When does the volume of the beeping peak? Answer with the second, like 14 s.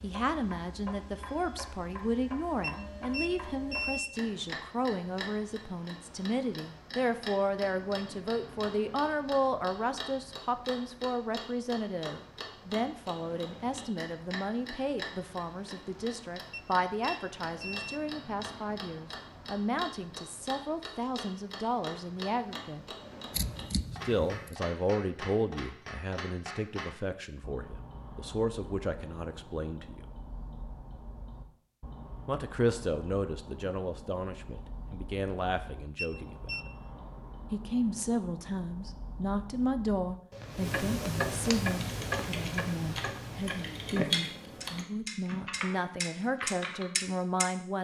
4 s.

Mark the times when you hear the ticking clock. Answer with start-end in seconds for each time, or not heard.
0.0-47.5.